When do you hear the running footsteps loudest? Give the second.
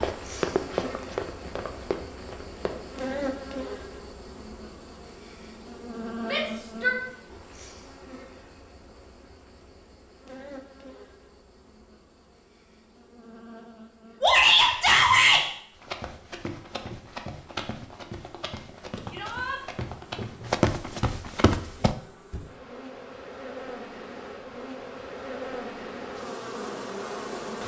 21 s.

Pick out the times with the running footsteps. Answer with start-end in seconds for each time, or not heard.
0.0-3.0, 15.8-21.9.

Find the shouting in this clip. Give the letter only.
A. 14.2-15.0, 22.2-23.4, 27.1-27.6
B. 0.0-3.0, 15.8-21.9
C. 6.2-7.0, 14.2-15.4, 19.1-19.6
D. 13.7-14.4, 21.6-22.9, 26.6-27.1
C.